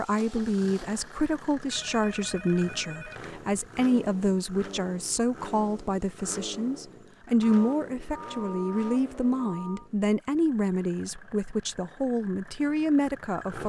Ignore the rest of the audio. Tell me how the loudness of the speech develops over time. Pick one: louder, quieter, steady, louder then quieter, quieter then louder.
steady.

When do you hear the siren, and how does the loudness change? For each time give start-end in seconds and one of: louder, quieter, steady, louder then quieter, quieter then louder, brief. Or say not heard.
not heard.